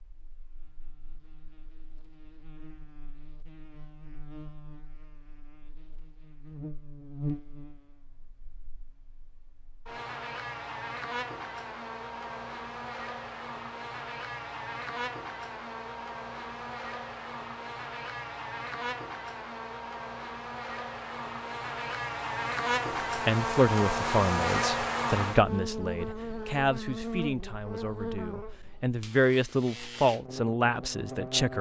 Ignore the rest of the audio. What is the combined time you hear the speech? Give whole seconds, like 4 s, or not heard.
8 s.